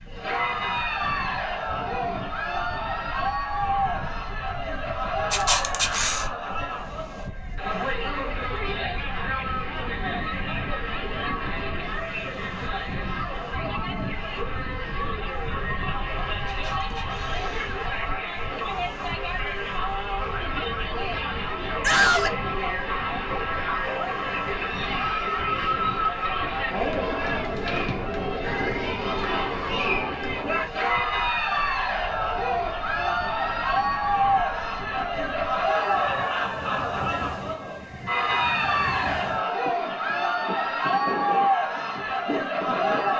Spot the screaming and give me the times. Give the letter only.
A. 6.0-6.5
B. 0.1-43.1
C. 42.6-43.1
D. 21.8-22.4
D.